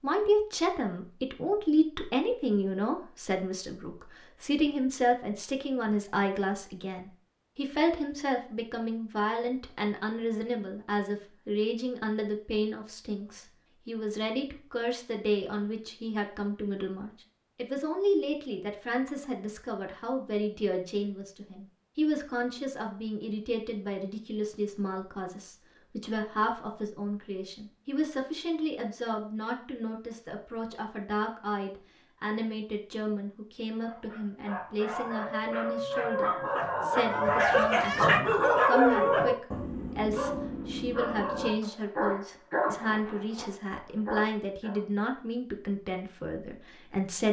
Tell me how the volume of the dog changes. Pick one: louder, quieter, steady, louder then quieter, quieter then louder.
louder then quieter.